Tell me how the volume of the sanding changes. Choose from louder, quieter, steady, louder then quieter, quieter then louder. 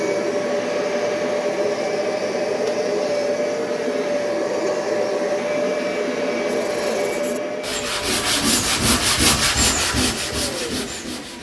louder then quieter.